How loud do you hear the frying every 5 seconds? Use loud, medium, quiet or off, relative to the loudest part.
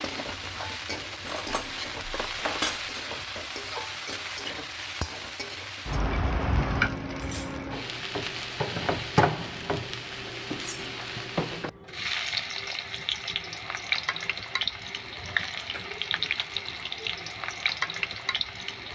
medium, loud, loud, loud.